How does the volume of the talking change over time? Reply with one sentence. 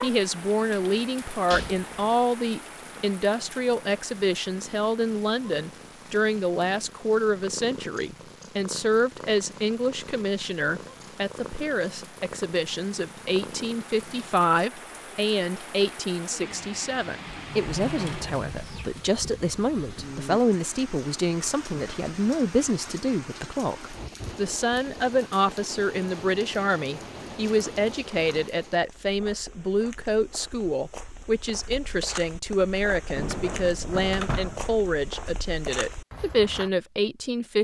The volume of the talking stays about the same.